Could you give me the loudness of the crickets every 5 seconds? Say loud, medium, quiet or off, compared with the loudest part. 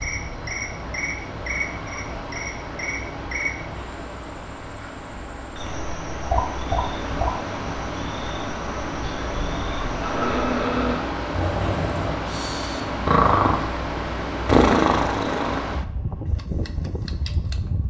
loud, loud, off, off.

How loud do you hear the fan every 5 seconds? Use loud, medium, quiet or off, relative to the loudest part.
medium, loud, loud, loud.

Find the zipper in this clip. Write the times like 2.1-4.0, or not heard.
not heard.